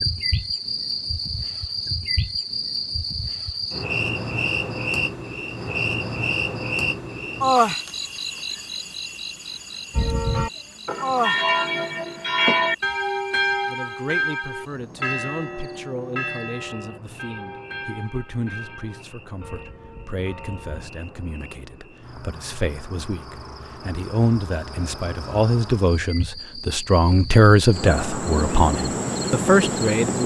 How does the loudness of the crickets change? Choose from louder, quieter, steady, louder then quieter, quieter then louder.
quieter then louder.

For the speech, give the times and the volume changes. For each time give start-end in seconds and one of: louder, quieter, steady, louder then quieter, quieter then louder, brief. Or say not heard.
13.7-30.2 louder.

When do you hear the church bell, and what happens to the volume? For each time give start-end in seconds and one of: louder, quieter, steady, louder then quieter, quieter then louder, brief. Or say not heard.
9.9-20.9 quieter.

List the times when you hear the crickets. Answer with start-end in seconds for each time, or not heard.
0.0-30.2.